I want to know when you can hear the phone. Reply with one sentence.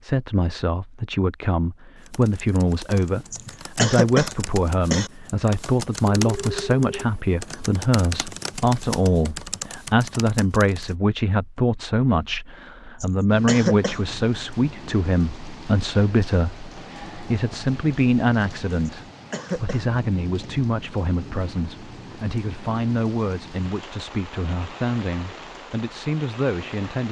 You can hear the phone from 6.2 to 7.0 s.